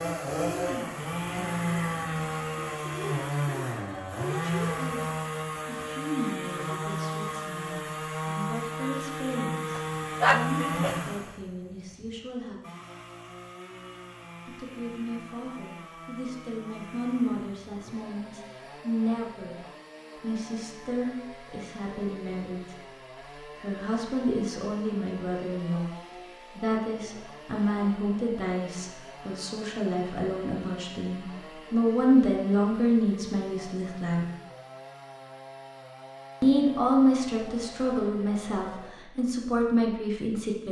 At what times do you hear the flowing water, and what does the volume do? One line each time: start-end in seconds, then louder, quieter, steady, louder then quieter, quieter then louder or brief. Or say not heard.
not heard.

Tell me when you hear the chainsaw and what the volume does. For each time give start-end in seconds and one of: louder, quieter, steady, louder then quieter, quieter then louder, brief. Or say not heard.
0.0-39.0 quieter.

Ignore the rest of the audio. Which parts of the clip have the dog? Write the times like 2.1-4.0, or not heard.
9.8-10.9.